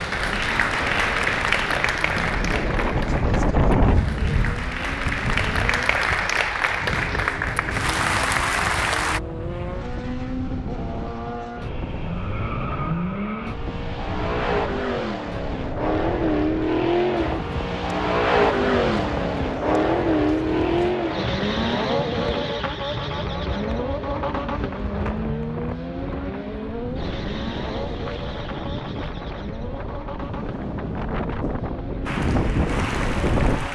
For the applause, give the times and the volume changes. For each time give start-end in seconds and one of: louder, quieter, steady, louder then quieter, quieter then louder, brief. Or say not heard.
0.0-9.2 quieter then louder
32.0-33.6 brief.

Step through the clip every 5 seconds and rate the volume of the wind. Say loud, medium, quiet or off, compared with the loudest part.
loud, medium, medium, medium, medium, medium, loud.